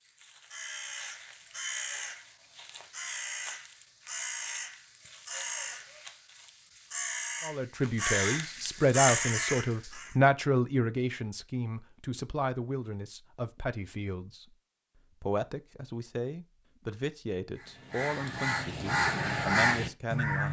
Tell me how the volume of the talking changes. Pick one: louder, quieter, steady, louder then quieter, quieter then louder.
quieter.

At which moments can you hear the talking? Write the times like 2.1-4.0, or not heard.
7.4-14.6, 15.2-20.4.